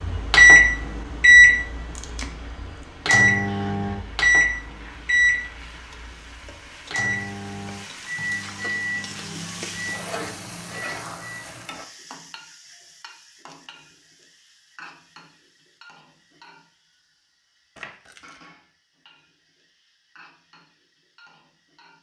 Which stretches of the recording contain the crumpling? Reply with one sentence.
The crumpling can be heard from 1.9 to 2.9 s and from 17.8 to 18.4 s.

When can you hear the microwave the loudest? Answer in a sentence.
The volume of the microwave peaks at 1 second.